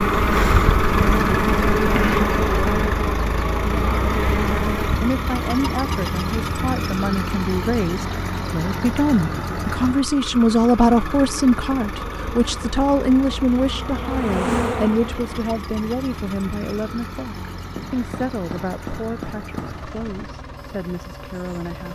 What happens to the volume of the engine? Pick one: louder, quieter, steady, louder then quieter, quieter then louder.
quieter.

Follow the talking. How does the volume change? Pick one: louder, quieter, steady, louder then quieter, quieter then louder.
louder then quieter.